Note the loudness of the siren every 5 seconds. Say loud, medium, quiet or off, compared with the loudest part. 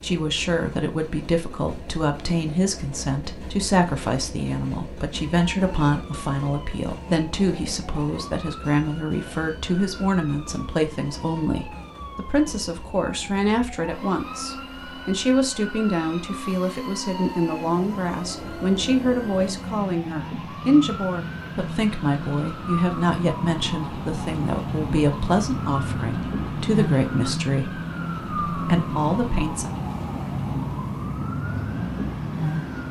off, quiet, quiet, medium, loud, loud, loud.